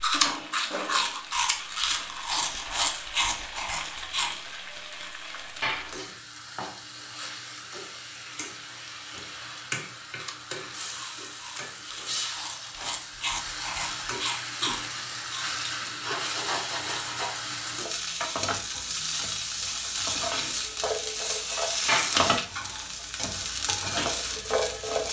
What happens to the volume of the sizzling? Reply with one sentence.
The loudness of the sizzling goes up.